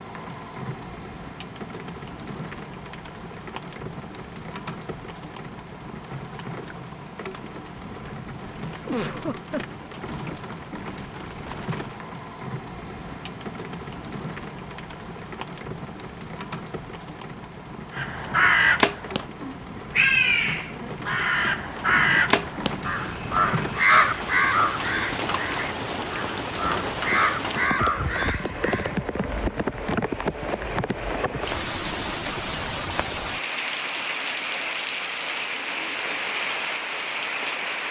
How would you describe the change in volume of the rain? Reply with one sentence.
The volume of the rain goes up.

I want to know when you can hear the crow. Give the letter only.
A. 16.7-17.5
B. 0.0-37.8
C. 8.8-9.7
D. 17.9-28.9
D.